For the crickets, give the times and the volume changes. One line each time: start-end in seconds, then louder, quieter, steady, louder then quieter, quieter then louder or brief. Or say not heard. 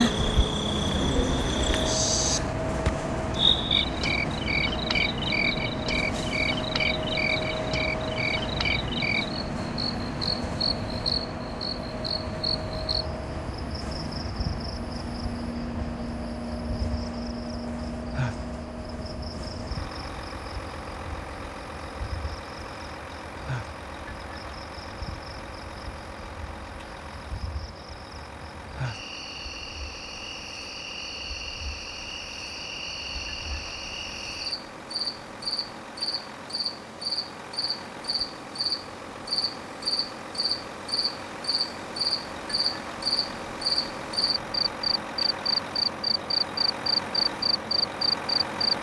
0.0-48.7 quieter then louder.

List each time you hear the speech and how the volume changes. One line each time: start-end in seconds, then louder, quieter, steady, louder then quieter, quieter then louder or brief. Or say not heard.
not heard.